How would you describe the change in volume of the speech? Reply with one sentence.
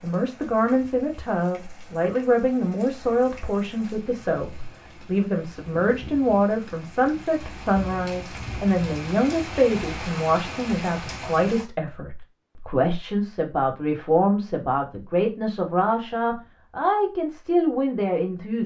The volume of the speech stays about the same.